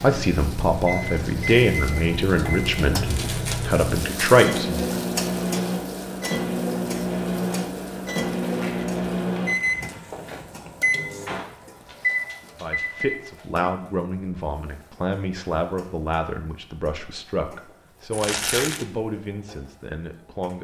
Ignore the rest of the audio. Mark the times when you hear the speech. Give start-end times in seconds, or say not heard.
0.0-4.8, 12.6-20.5.